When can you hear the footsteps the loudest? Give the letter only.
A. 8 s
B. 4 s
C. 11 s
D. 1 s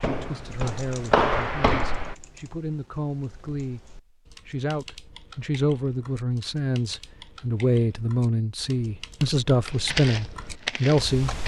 D.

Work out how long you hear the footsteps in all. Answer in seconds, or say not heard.
4 s.